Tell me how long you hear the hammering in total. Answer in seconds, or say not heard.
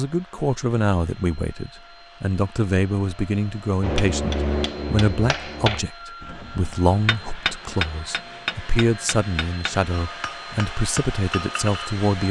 8 s.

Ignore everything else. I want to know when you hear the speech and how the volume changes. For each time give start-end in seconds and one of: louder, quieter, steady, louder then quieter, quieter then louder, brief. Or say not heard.
0.0-12.2 steady.